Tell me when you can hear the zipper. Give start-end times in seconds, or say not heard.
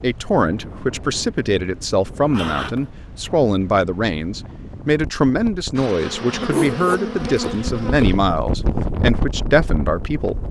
2.3-2.9, 6.5-8.2.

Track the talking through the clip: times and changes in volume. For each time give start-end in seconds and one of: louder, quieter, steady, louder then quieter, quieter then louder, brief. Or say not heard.
0.0-10.4 steady.